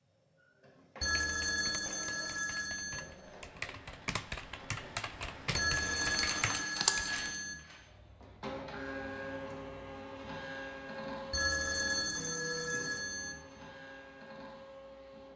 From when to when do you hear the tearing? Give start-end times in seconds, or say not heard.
5.8-7.3.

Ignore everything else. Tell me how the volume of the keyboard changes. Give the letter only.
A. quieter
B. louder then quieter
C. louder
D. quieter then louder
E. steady
C.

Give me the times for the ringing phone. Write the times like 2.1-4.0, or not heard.
1.0-3.0, 5.5-7.5, 11.3-13.3.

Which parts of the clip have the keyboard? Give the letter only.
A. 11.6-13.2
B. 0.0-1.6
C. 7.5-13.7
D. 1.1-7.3
D.